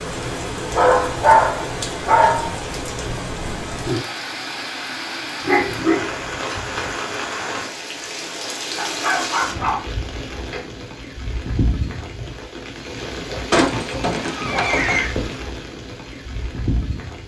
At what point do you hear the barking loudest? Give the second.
1 s.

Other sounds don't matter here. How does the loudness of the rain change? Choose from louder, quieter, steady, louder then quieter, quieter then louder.
steady.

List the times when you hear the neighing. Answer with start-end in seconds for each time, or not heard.
13.5-15.1.